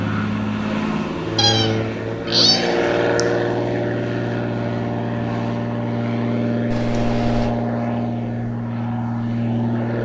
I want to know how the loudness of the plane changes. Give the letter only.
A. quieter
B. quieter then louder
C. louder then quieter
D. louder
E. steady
E.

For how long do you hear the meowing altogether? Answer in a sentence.
The meowing can be heard for 3 seconds in total.